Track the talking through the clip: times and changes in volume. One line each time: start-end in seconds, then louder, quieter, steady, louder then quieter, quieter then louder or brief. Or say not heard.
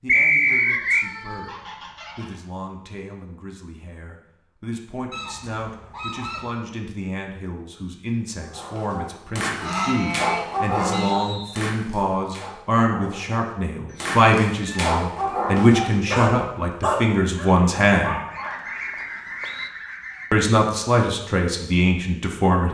0.0-18.2 louder
20.3-22.7 brief.